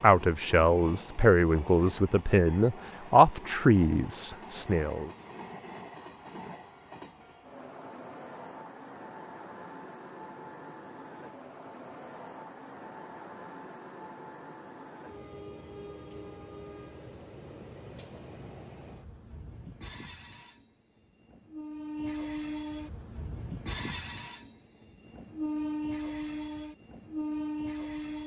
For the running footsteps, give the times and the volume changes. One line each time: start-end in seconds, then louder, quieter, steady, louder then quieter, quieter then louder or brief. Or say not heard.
not heard.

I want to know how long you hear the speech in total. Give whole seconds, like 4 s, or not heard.
5 s.